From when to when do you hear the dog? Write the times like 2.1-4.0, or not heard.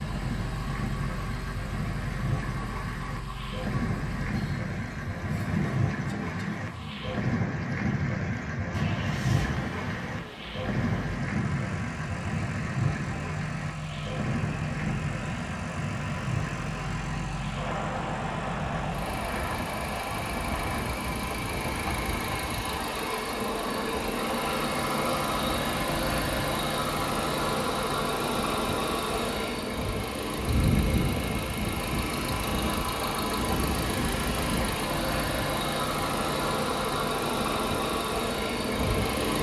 not heard.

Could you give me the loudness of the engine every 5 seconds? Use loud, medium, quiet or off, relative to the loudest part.
medium, medium, medium, medium, loud, loud, loud, loud.